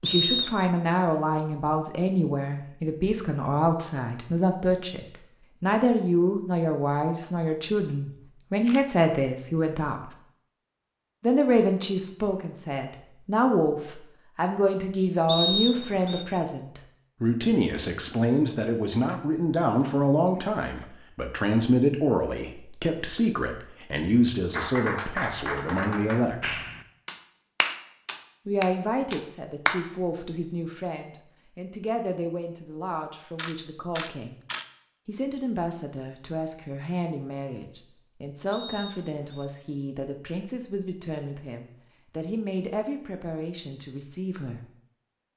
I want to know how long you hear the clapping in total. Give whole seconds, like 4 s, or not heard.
5 s.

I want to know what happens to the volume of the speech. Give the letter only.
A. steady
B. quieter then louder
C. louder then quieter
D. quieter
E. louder
D.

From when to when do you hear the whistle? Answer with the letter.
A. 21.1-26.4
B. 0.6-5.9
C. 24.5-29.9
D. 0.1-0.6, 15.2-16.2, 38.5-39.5
D.